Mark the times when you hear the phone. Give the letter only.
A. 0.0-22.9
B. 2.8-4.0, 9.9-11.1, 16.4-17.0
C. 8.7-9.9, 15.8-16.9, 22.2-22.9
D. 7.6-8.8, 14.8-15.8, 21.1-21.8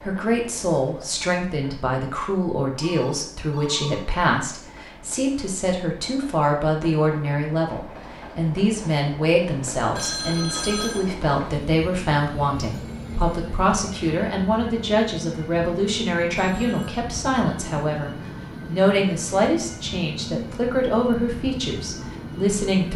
B.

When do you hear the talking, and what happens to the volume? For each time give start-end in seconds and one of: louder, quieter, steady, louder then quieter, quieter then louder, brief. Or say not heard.
0.0-22.9 steady.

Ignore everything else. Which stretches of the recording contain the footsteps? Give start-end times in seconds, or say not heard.
not heard.